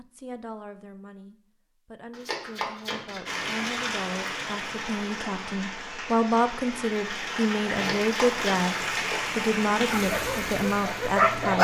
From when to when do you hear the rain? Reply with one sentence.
The rain can be heard from 3.2 to 11.5 s.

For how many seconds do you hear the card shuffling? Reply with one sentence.
You can hear the card shuffling for 3 seconds altogether.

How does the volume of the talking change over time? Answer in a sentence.
The volume of the talking goes up.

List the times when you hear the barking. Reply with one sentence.
The barking can be heard from 9.9 to 11.5 s.